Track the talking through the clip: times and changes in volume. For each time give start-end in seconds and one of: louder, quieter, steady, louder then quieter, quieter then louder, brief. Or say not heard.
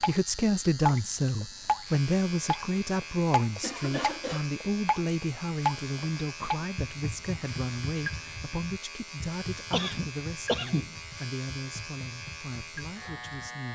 0.1-13.7 quieter.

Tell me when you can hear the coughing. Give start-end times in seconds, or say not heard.
3.6-4.5, 9.7-10.9.